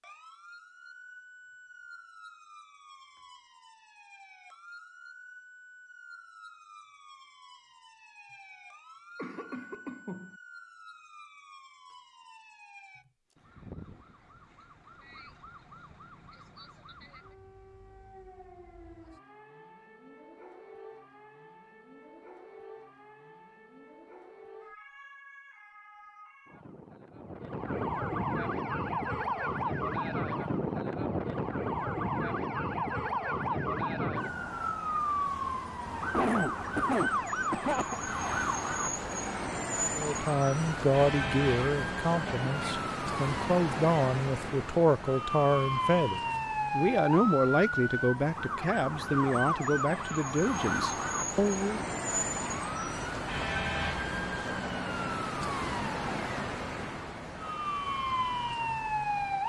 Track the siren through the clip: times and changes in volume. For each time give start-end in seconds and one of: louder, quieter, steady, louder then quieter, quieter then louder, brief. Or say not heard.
0.0-59.4 louder.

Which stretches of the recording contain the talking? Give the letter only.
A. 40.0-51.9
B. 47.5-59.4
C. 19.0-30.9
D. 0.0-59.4
A.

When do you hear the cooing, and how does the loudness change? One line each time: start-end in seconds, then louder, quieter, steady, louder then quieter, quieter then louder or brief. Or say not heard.
not heard.